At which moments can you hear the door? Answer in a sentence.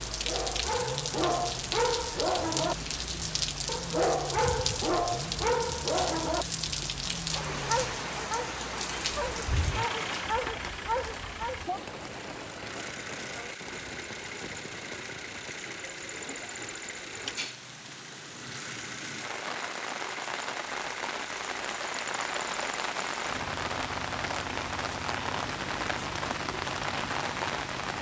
The door can't be heard in this clip.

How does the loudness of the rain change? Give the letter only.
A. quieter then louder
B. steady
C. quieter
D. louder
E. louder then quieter
A.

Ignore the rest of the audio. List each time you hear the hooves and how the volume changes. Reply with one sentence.
The hooves can't be heard in this clip.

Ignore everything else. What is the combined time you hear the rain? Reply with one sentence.
You can hear the rain for 28 seconds altogether.